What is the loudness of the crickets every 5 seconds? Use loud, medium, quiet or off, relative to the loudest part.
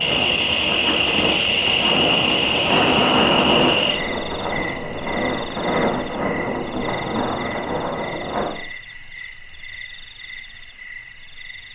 loud, medium, medium.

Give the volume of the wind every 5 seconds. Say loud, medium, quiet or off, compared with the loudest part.
loud, loud, off.